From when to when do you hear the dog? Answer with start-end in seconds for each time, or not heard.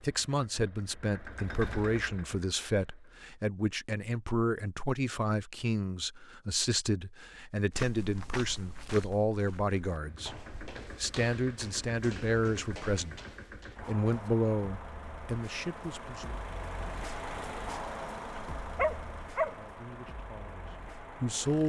17.9-19.6.